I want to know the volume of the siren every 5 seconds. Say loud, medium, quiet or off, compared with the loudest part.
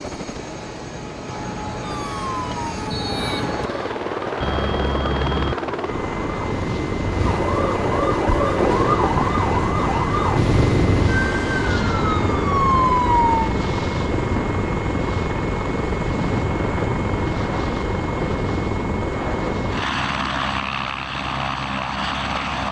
medium, loud, loud, off, off.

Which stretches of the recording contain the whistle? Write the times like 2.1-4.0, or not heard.
2.9-4.0.